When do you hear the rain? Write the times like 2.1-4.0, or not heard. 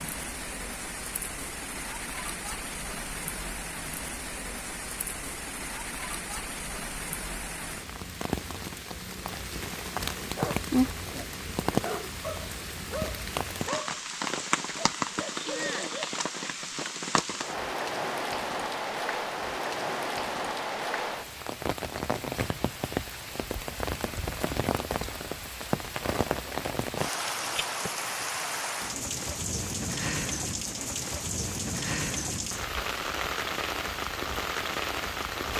0.0-35.5.